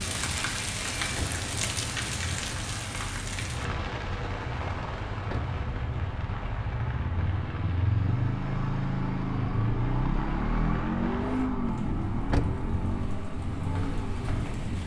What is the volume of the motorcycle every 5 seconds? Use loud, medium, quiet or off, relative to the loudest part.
medium, loud, loud.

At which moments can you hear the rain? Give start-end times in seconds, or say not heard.
0.0-14.8.